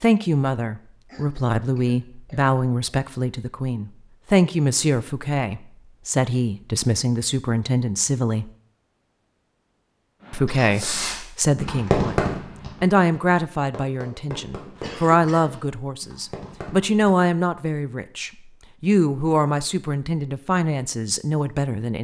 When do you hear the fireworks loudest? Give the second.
12 s.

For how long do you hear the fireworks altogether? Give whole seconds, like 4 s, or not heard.
7 s.